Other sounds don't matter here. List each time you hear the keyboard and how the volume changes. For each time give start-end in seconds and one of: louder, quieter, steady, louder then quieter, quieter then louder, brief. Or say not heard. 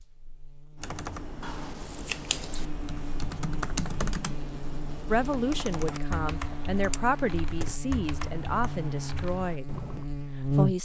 0.8-10.1 louder then quieter.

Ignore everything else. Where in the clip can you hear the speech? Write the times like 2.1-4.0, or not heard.
5.0-10.8.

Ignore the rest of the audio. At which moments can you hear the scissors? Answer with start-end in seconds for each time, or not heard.
1.4-2.6, 6.8-7.9.